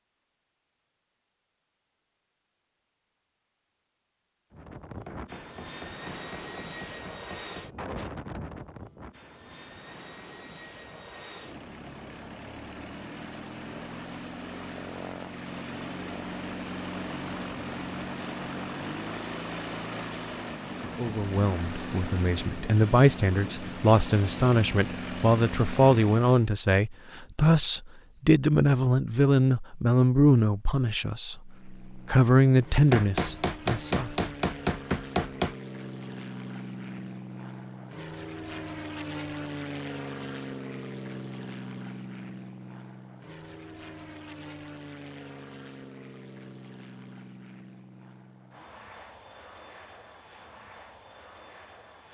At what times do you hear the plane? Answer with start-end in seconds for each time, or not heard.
4.5-26.5, 31.4-52.1.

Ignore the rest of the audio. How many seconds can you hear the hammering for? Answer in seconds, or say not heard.
5 s.